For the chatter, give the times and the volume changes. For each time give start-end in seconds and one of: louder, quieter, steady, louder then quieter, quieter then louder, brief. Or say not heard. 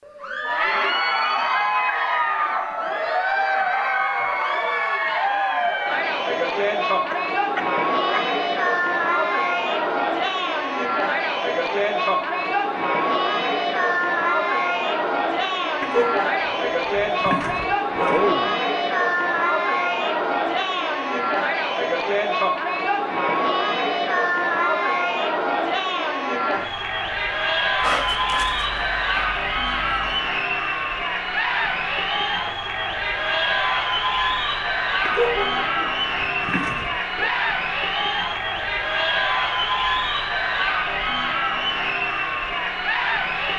0.1-43.5 steady.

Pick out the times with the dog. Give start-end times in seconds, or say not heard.
7.1-8.2, 15.8-18.6, 27.8-30.2, 35.0-37.3.